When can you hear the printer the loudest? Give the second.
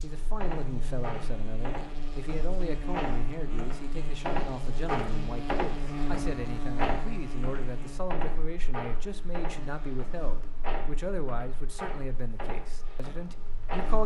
5 s.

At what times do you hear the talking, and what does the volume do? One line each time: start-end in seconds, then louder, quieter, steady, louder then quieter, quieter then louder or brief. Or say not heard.
0.0-14.0 steady.